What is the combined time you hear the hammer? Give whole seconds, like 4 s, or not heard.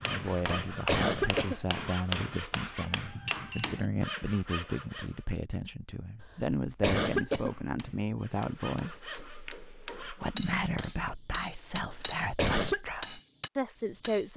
11 s.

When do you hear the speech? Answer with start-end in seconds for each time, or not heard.
0.1-14.3.